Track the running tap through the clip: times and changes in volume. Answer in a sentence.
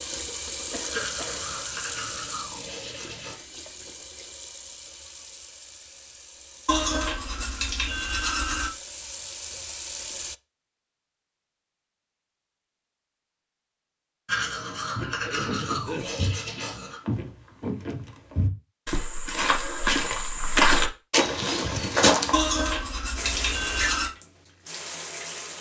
The running tap can be heard from 0.0 to 10.3 s, getting quieter then louder; and briefly from 23.1 to 25.5 s.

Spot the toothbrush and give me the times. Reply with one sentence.
The toothbrush can be heard from 0.9 to 3.4 s, from 6.7 to 8.7 s, from 14.2 to 17.0 s and from 22.3 to 24.1 s.